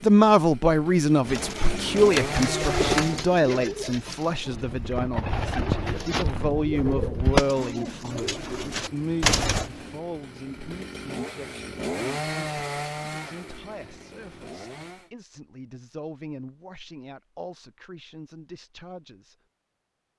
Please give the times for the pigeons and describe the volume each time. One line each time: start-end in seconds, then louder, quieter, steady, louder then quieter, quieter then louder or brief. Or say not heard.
1.2-9.7 quieter then louder.